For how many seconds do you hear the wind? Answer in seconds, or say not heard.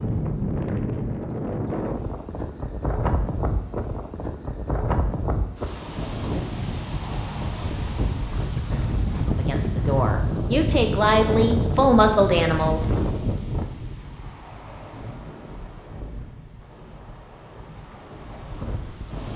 19 s.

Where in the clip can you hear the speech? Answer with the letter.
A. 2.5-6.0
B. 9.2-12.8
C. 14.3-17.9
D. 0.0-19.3
B.